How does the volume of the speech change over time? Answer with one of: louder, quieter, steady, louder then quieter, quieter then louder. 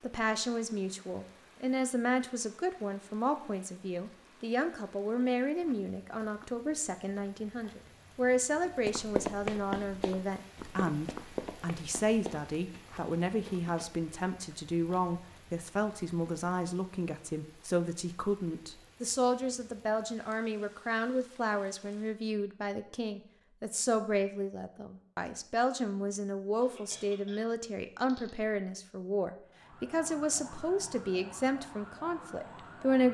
steady.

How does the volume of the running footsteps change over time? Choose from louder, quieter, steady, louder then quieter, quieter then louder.
quieter.